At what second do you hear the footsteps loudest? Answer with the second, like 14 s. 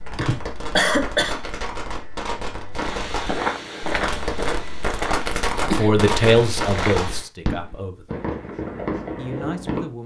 3 s.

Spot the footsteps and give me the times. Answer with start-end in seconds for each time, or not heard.
2.8-7.2.